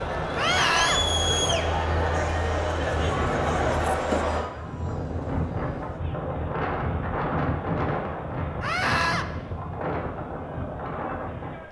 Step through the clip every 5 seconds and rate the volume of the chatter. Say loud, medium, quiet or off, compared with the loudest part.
loud, quiet, quiet.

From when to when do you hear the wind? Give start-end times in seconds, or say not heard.
0.0-11.6.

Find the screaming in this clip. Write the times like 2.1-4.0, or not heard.
0.3-1.0, 8.6-9.2.